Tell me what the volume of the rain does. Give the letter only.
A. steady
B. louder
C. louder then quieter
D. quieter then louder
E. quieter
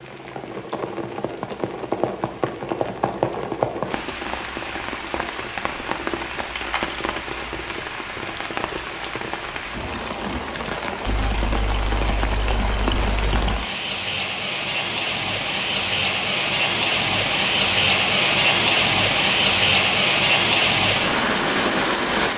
B.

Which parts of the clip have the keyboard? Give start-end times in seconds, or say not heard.
11.1-13.7.